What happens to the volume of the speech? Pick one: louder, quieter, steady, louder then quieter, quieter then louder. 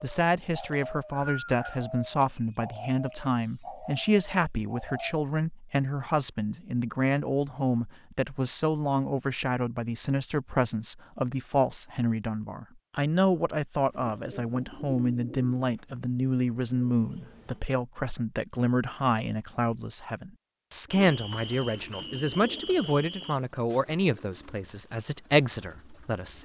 steady.